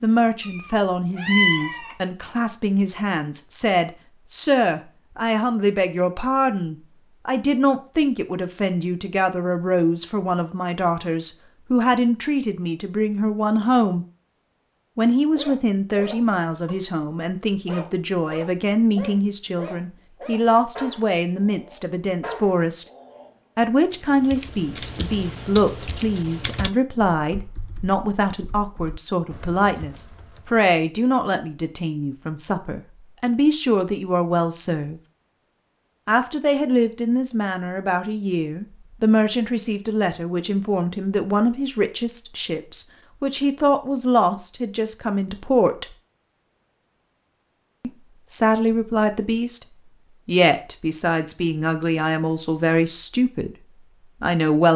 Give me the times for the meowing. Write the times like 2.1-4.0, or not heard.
0.4-1.9.